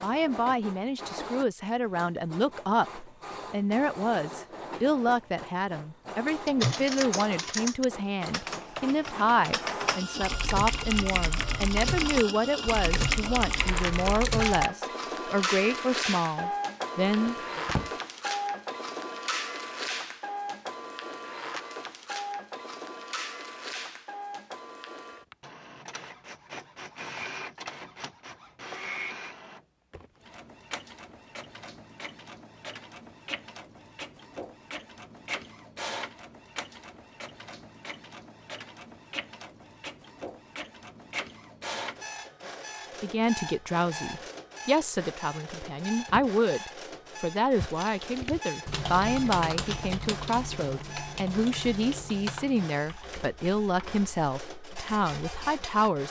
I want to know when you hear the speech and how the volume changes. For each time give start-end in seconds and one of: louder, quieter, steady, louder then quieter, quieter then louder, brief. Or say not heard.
0.0-17.6 steady
43.0-56.0 steady.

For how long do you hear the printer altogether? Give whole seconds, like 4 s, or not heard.
56 s.